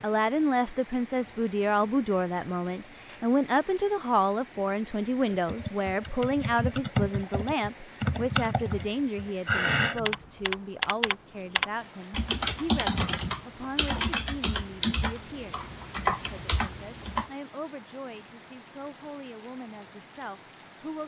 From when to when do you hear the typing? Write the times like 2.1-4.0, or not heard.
5.5-17.3.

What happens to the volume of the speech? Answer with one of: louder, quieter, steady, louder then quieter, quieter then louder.
quieter.